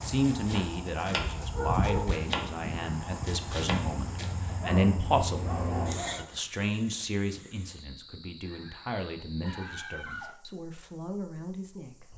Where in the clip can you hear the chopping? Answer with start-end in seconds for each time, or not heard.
0.0-4.3.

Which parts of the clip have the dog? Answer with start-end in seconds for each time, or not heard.
1.5-2.2, 4.5-6.3, 8.4-10.3.